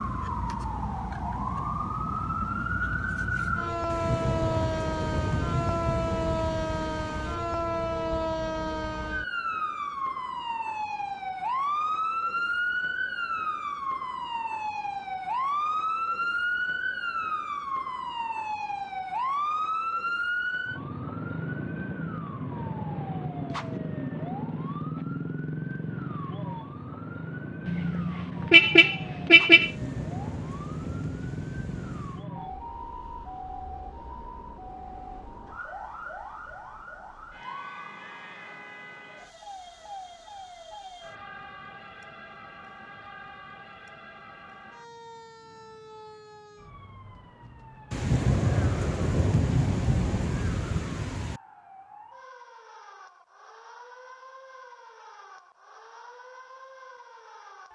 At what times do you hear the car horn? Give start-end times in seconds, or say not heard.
27.6-29.7.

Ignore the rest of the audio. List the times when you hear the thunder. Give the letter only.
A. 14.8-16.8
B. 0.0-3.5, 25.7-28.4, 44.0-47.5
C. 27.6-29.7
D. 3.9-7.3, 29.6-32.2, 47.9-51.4
D.